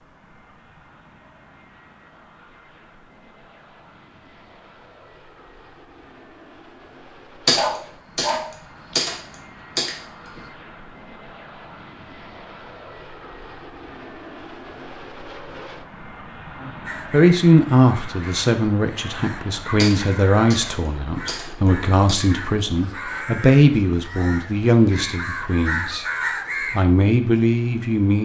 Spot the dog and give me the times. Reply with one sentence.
The dog can be heard from 7.5 to 8.9 s.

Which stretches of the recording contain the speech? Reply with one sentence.
The speech can be heard from 16.6 to 26.1 s and from 26.7 to 28.1 s.